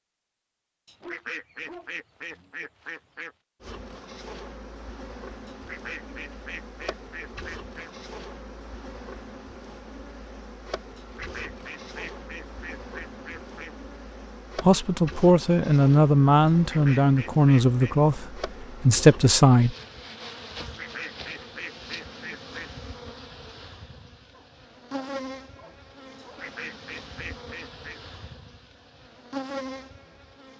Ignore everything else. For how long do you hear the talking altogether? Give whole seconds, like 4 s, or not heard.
5 s.